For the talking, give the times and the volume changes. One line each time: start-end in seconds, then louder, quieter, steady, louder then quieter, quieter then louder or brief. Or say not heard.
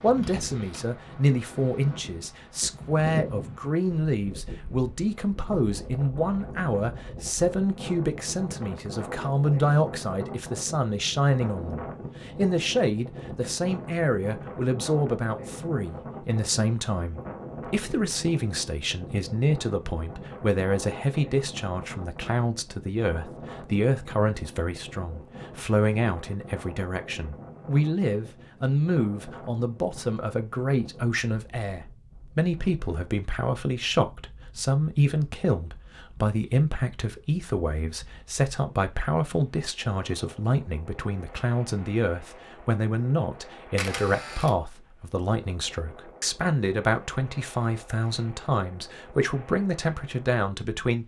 0.0-51.0 steady.